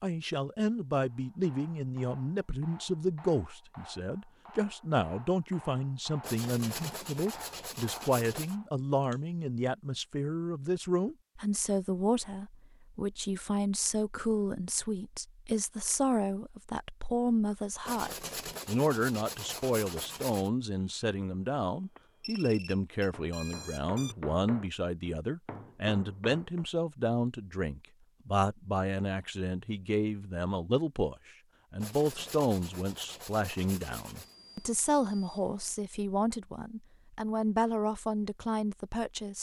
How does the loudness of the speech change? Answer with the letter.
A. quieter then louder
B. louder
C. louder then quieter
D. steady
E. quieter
D.